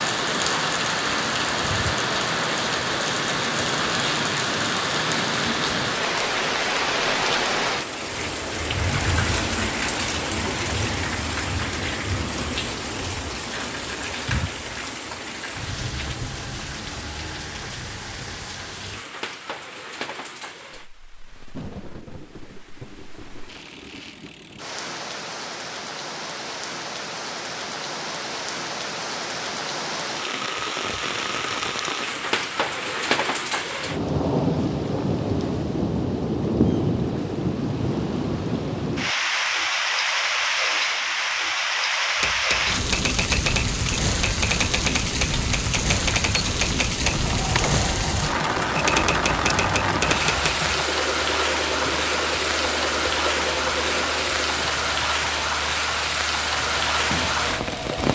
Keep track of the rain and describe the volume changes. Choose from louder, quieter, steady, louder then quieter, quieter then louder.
quieter then louder.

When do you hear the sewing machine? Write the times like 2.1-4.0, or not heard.
47.0-58.0.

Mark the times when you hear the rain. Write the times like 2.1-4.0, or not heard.
0.0-58.0.